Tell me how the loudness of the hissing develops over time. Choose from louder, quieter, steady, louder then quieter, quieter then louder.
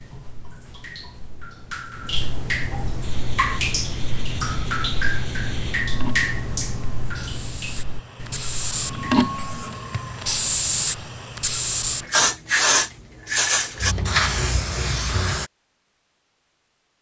louder.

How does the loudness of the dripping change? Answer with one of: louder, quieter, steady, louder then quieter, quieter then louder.
louder then quieter.